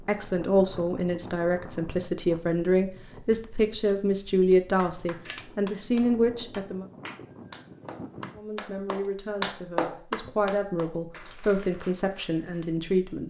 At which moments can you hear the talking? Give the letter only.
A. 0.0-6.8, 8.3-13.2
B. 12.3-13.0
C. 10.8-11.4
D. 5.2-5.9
A.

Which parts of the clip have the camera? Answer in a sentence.
You can hear the camera from 5.2 to 5.9 s.